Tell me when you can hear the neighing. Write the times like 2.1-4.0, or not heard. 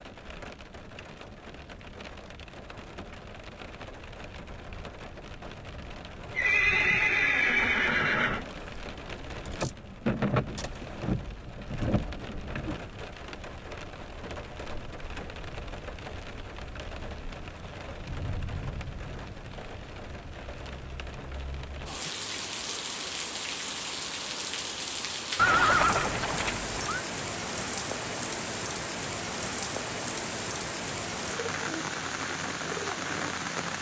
6.3-8.4, 25.4-27.0.